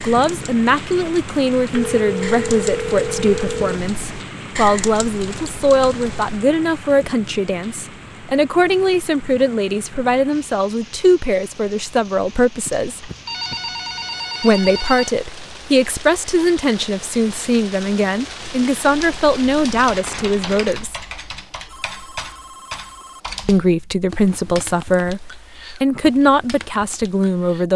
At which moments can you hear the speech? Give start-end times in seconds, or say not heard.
0.0-13.1, 14.4-21.0, 23.4-27.7.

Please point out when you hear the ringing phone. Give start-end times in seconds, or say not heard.
1.7-3.6, 12.7-15.2, 21.6-23.2.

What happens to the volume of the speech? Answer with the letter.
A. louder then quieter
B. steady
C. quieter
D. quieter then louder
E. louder
B.